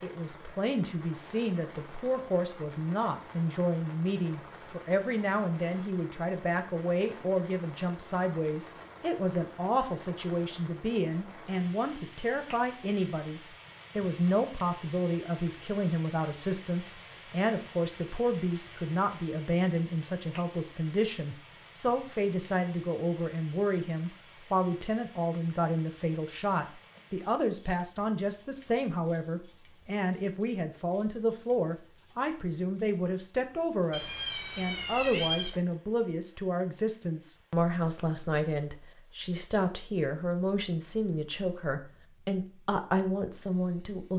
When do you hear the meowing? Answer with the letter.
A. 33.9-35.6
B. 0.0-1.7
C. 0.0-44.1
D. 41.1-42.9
A.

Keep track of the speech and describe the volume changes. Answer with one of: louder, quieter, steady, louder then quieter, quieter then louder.
steady.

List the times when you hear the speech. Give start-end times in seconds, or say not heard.
0.0-44.1.